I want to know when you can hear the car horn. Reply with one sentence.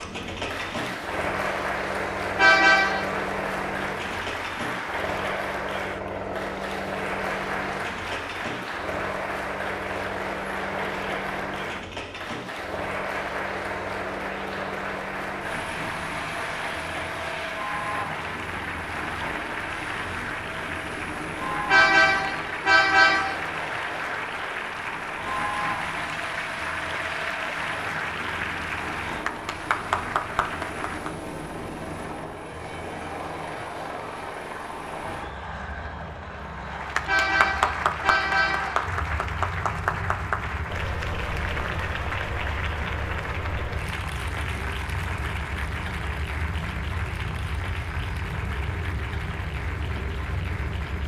The car horn can be heard from 2.4 to 3.1 s, from 21.6 to 23.4 s and from 37.0 to 38.8 s.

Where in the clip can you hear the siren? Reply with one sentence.
You can't hear the siren here.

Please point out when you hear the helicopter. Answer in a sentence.
You can hear the helicopter from 0.0 to 51.0 s.